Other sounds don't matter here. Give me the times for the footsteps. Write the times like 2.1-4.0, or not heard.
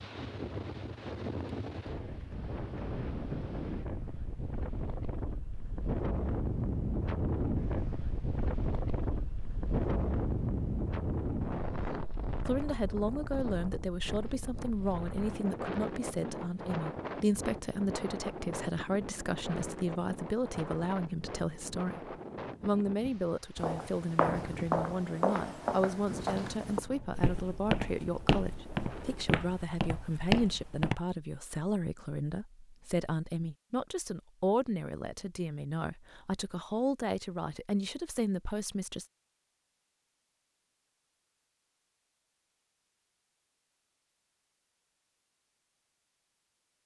23.6-30.9.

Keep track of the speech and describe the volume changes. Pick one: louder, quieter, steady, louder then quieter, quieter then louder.
steady.